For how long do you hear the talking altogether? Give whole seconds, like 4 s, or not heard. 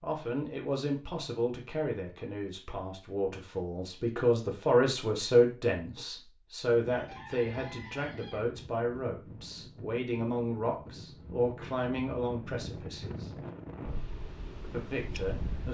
14 s.